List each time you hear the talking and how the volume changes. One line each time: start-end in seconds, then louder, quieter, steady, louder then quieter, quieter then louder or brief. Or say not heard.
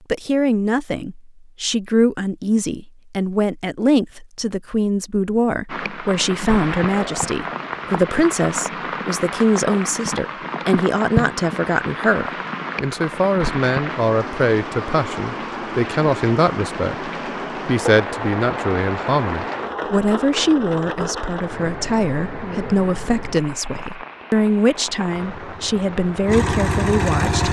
0.1-27.4 steady.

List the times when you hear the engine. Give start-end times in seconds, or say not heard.
25.1-27.4.